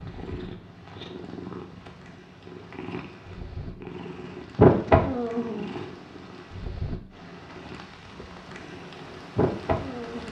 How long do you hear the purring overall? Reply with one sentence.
You can hear the purring for 7 seconds altogether.